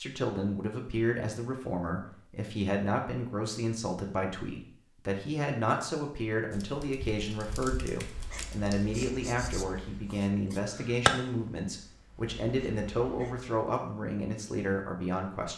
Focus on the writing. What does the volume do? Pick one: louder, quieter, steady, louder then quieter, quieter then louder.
louder then quieter.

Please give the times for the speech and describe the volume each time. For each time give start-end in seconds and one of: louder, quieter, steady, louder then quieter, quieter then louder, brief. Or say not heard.
0.0-15.5 steady.